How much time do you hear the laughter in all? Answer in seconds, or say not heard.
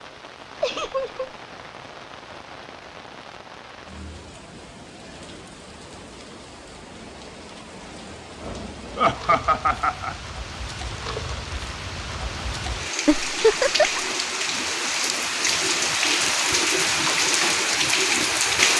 3 s.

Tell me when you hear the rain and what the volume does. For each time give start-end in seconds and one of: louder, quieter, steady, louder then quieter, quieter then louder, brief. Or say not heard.
0.0-18.7 louder.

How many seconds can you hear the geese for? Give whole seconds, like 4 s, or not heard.
not heard.